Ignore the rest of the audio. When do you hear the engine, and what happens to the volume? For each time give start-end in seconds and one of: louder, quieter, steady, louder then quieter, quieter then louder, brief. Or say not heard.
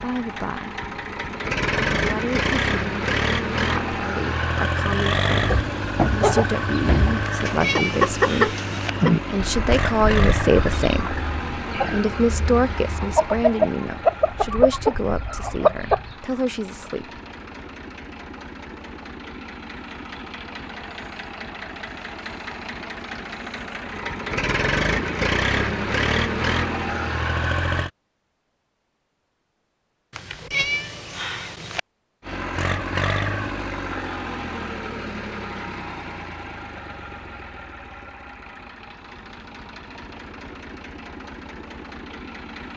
0.0-27.9 quieter then louder
32.2-42.7 quieter.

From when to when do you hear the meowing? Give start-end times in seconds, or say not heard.
7.2-8.9, 30.1-31.8.